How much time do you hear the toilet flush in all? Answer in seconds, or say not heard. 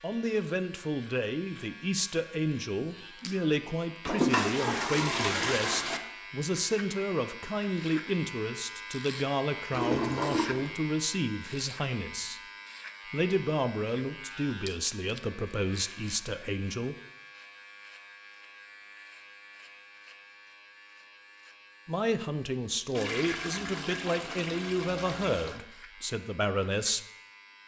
6 s.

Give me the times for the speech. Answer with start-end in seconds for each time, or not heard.
0.0-12.4, 13.1-16.9, 21.9-27.1.